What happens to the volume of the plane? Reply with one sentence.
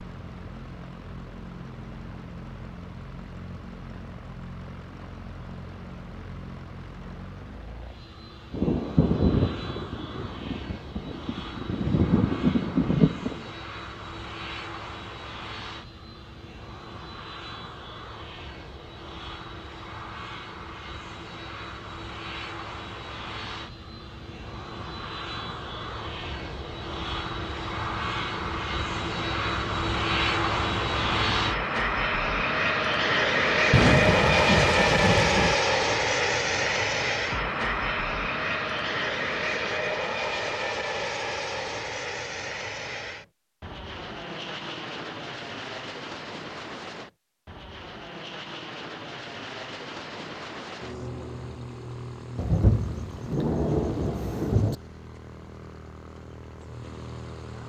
The loudness of the plane goes up, then down.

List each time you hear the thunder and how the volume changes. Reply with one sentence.
The thunder can be heard from 8.5 to 13.5 s, getting quieter then louder; briefly from 33.7 to 35.6 s; and briefly from 52.4 to 54.8 s.